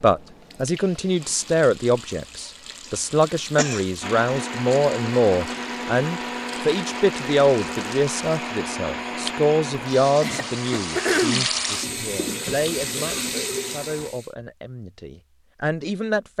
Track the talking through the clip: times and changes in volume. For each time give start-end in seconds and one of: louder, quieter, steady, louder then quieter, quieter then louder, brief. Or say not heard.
0.0-16.3 quieter.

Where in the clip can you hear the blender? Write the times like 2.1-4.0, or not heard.
4.0-14.1.